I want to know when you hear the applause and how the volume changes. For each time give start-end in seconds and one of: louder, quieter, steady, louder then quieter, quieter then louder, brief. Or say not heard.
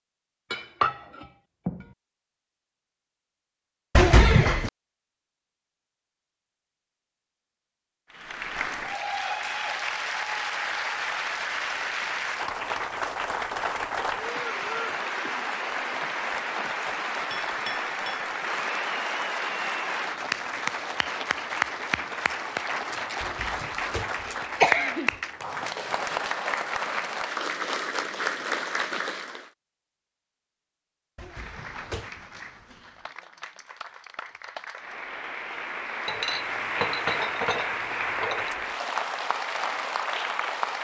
8.1-29.5 steady
31.2-40.7 louder.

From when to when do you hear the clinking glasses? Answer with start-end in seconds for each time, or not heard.
0.5-1.9, 17.3-18.3, 36.0-38.5.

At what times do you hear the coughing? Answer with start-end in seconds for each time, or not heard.
4.0-4.7, 23.2-25.1, 31.1-32.3.